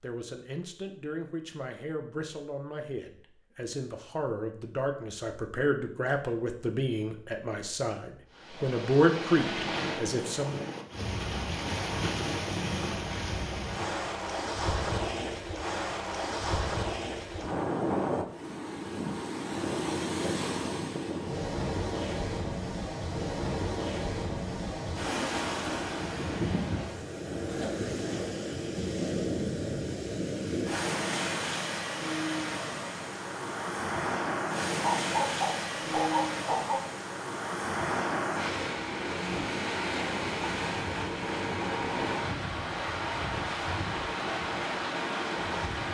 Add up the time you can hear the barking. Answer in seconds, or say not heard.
2 s.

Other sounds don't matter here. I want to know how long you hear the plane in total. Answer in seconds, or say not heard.
not heard.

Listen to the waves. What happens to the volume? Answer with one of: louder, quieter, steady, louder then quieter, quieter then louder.
steady.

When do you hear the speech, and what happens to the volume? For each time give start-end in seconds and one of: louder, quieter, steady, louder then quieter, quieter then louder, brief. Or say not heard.
0.0-10.7 louder.